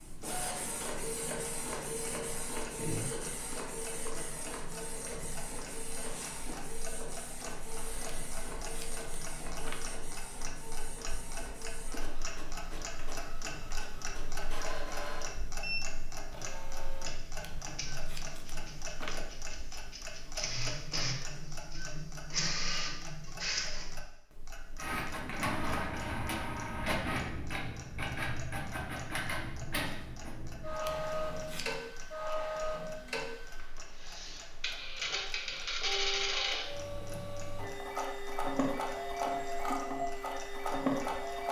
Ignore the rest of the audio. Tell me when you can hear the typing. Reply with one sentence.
You can't hear the typing here.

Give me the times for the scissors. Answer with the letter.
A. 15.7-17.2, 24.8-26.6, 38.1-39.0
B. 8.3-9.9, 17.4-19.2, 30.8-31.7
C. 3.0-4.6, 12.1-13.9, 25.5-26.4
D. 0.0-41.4
B.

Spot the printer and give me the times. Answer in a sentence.
You can hear the printer from 0.0 to 41.4 s.